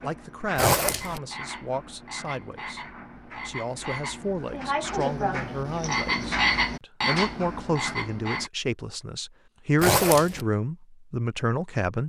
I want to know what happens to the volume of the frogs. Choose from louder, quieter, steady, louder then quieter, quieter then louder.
louder.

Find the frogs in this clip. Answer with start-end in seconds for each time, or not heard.
0.0-8.5.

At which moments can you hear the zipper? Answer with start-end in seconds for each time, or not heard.
0.6-1.2, 9.8-10.4.